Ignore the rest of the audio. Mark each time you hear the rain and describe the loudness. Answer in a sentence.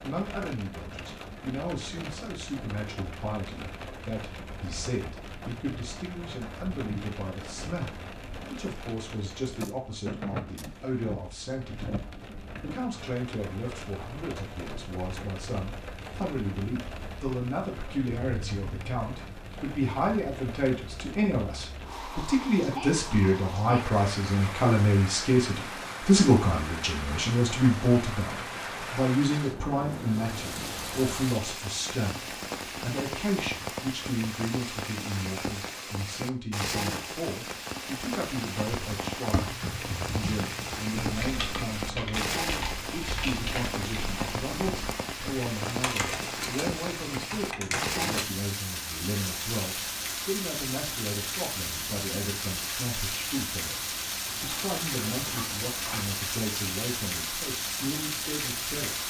You can hear the rain from 0.0 to 59.0 s, getting louder.